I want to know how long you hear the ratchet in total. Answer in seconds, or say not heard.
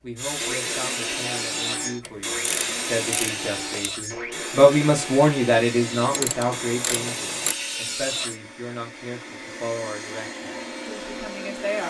3 s.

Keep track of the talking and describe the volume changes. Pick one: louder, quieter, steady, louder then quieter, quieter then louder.
louder then quieter.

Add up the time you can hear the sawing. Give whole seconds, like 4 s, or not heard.
8 s.